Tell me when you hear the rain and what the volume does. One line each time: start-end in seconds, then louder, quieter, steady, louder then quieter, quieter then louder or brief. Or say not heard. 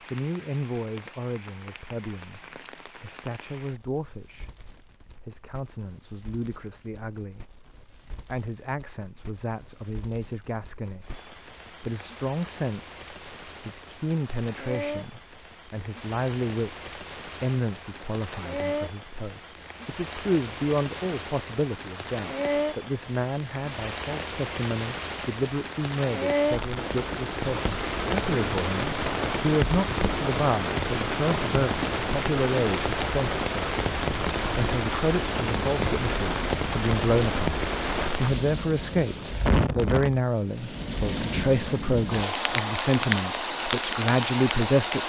0.0-45.0 louder.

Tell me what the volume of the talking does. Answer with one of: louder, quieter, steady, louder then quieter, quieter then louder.
louder.